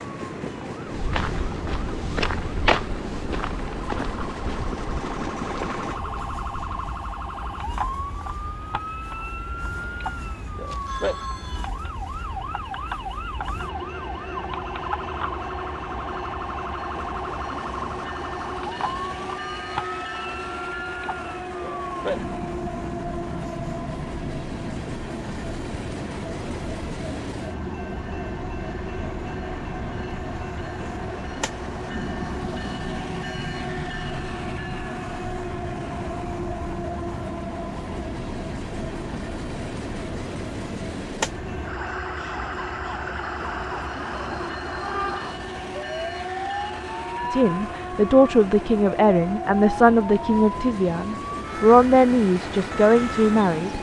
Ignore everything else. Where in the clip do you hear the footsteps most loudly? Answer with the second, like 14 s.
3 s.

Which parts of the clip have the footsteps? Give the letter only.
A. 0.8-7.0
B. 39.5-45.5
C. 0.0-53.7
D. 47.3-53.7
A.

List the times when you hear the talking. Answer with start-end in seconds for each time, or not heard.
47.3-53.7.